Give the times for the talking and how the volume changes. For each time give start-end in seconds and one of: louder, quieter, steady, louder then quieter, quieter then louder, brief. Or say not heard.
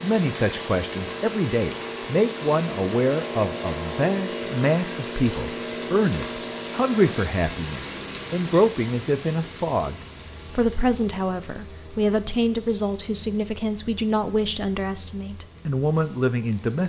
0.0-16.8 steady.